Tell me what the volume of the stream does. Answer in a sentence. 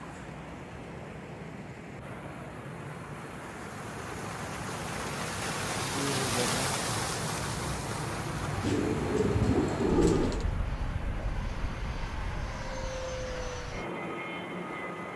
The volume of the stream goes up, then down.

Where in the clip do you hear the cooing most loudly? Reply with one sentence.
The loudest moment of the cooing is at 10 seconds.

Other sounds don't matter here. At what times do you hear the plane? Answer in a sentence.
The plane can be heard from 0.0 to 15.1 s.